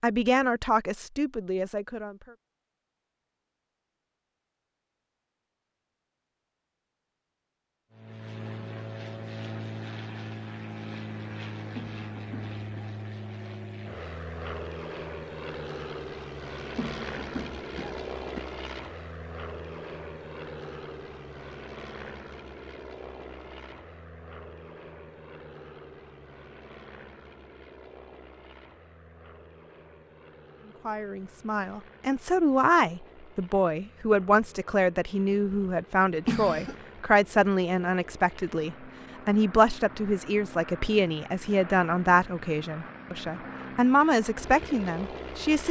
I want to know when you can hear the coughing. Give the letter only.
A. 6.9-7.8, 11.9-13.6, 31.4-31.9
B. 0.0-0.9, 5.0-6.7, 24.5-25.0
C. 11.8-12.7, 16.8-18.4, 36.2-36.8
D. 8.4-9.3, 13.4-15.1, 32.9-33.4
C.